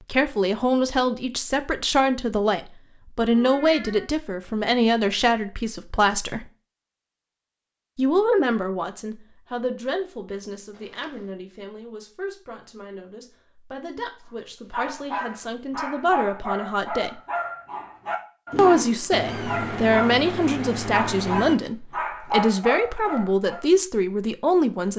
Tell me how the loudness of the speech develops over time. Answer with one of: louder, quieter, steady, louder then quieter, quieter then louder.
quieter then louder.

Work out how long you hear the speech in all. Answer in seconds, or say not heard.
22 s.